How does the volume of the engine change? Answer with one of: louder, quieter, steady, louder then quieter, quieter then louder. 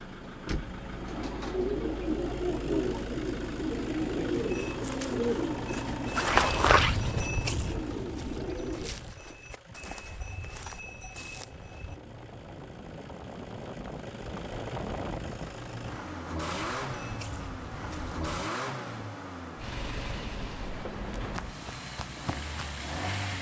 quieter then louder.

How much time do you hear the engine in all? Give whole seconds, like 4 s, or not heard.
23 s.